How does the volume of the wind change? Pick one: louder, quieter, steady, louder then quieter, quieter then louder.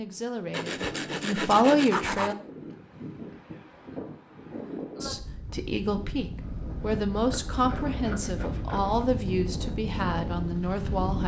louder.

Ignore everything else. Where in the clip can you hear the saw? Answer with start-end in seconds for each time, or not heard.
0.5-2.4, 6.4-9.1.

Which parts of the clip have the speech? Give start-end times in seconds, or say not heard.
0.0-2.4, 5.0-11.2.